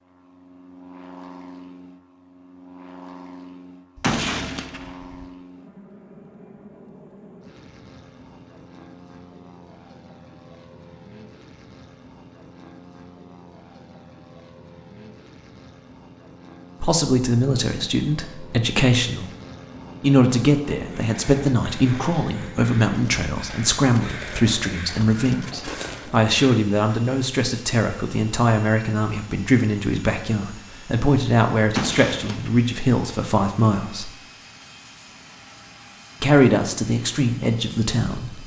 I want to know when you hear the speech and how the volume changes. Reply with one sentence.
The speech can be heard briefly from 16.8 to 19.3 s; from 20.0 to 34.1 s, at a steady volume; and briefly from 36.2 to 38.4 s.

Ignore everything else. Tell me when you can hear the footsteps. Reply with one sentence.
You can't hear the footsteps here.